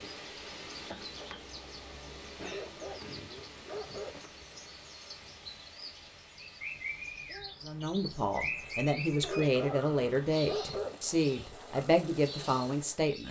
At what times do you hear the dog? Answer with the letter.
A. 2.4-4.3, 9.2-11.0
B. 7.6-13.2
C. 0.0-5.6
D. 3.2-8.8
A.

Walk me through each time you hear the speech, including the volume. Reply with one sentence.
You can hear the speech from 7.6 to 13.2 s, at a steady volume.